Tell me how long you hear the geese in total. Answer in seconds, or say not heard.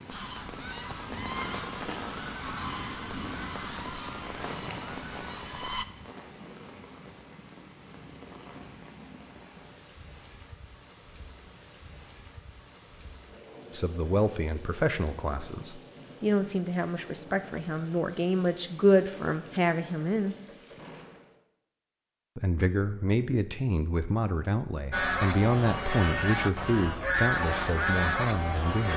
10 s.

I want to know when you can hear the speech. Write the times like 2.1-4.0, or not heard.
13.7-20.4, 22.4-28.9.